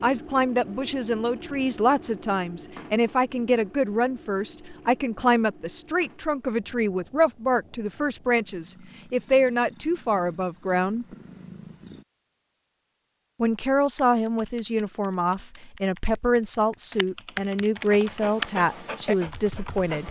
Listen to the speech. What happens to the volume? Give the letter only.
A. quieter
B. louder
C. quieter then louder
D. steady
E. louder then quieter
D.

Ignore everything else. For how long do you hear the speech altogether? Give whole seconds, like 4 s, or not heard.
18 s.